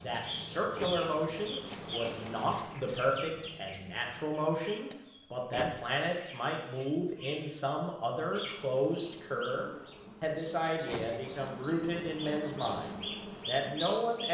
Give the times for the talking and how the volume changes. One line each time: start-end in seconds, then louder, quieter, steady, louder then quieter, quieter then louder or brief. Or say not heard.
0.0-14.2 steady.